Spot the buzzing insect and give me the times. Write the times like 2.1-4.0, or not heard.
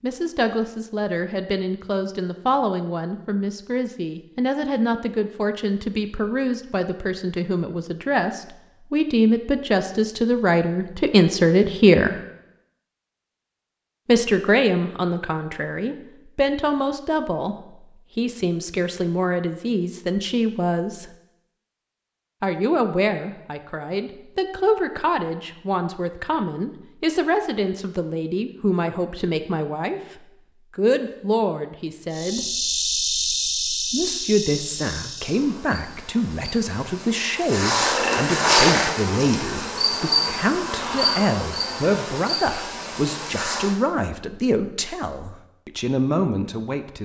32.1-43.8.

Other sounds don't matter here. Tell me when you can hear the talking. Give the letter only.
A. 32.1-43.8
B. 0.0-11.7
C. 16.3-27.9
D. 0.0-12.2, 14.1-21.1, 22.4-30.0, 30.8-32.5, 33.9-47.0
D.